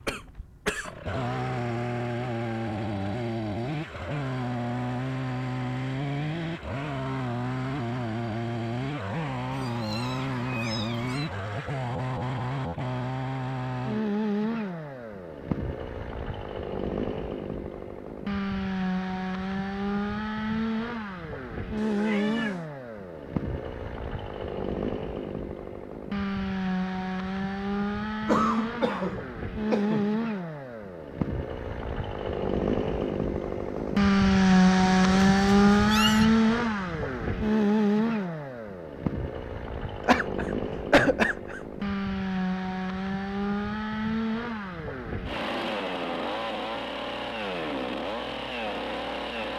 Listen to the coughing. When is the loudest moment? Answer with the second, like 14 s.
41 s.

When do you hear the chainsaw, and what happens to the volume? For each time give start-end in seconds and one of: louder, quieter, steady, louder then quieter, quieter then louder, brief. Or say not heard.
0.0-49.5 louder then quieter.